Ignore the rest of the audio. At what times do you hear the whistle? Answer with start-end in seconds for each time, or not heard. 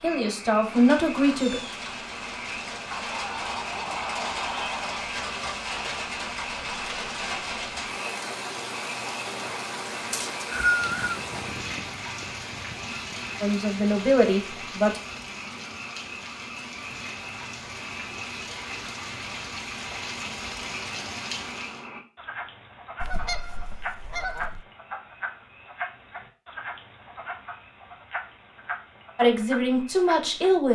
10.1-11.2.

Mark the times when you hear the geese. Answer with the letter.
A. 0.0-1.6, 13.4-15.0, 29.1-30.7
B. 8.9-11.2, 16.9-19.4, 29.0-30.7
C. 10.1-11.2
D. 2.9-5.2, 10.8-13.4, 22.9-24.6
D.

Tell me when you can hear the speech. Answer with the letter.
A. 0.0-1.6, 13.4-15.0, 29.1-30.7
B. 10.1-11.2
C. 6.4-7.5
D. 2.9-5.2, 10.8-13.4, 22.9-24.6
A.